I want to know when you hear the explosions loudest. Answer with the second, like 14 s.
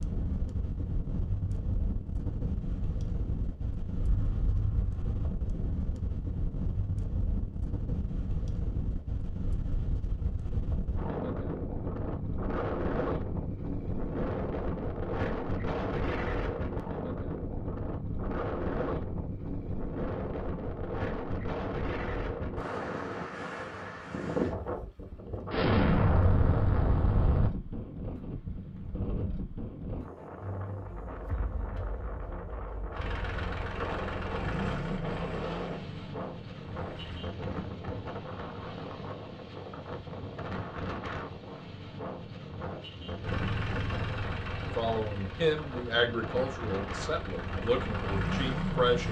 26 s.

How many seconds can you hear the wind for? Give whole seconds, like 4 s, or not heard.
49 s.